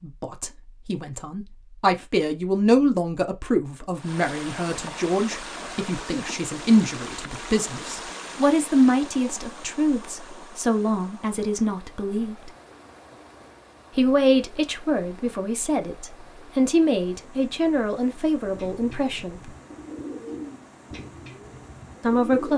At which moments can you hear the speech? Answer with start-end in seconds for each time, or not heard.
0.0-12.5, 13.9-19.5, 22.0-22.5.